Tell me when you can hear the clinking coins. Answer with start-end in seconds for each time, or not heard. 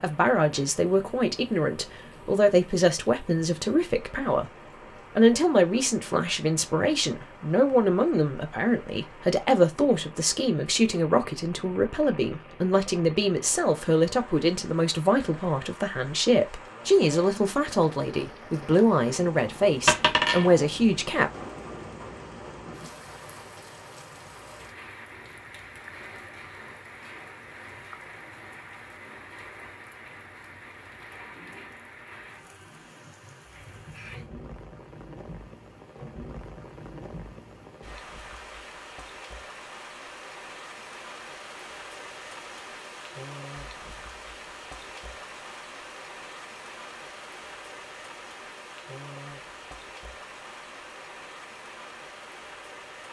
19.9-20.5.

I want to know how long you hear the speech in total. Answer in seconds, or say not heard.
21 s.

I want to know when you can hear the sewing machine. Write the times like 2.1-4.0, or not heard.
not heard.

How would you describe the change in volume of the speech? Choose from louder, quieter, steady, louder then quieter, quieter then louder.
steady.